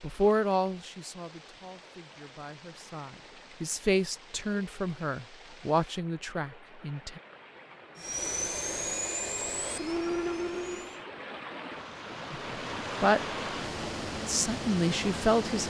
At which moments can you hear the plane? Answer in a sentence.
The plane can be heard from 8.0 to 11.1 s.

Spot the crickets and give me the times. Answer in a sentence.
You can't hear the crickets here.